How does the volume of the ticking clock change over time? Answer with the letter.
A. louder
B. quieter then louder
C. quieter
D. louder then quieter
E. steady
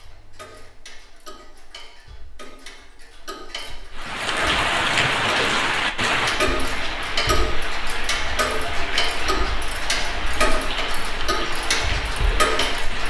A.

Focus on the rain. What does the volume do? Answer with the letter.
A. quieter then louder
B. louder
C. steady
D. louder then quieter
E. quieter
E.